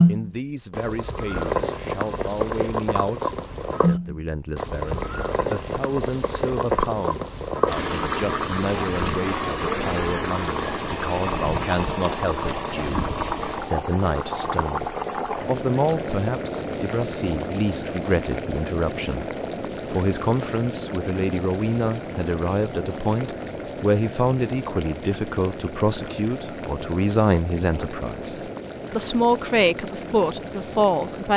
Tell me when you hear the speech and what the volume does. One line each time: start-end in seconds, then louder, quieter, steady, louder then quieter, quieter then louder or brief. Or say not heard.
0.1-31.3 louder.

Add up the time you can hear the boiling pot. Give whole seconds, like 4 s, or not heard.
31 s.